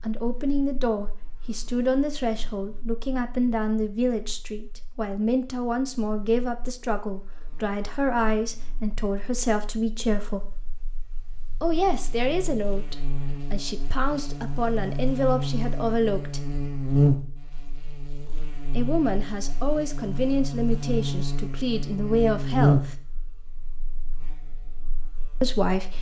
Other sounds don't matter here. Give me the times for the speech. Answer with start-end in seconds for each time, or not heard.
0.0-10.4, 11.6-16.4, 18.8-22.9, 25.4-25.9.